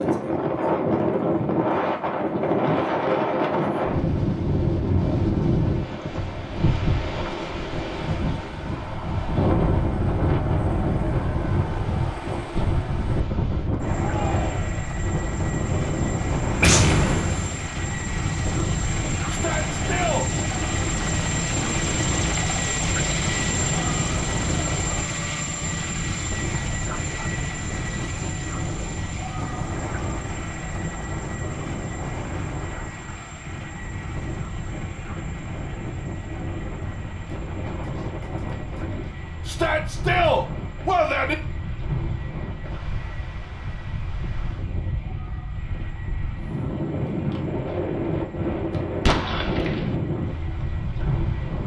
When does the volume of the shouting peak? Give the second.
40 s.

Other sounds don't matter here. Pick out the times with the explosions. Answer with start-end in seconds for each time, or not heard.
16.6-17.7, 49.0-50.0.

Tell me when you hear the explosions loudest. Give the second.
17 s.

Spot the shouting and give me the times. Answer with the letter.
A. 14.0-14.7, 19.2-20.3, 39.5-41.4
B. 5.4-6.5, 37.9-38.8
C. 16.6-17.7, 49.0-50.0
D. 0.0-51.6
A.